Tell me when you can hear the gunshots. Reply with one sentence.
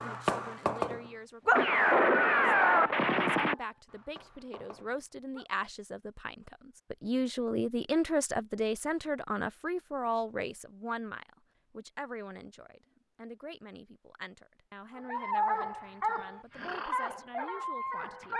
The gunshots can be heard from 1.6 to 3.5 s.